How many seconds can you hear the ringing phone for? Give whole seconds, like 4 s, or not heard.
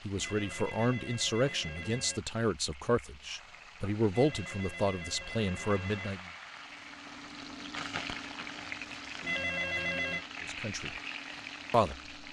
5 s.